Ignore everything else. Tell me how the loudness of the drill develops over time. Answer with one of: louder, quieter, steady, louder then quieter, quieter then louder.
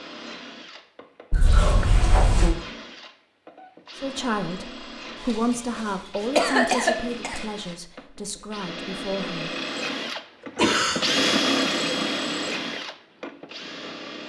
louder.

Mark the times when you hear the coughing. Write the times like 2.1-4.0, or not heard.
1.3-2.5, 5.2-7.4, 10.6-11.3.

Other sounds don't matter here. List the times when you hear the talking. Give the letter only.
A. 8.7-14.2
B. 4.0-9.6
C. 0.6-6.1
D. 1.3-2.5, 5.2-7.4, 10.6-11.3
B.